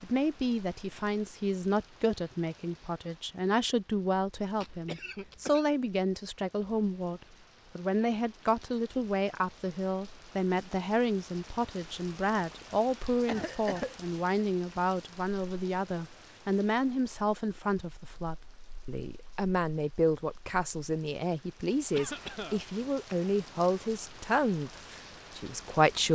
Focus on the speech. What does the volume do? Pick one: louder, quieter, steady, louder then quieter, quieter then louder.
steady.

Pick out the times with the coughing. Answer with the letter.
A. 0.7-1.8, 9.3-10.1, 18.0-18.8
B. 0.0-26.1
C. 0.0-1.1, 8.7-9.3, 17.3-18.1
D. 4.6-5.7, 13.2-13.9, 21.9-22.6
D.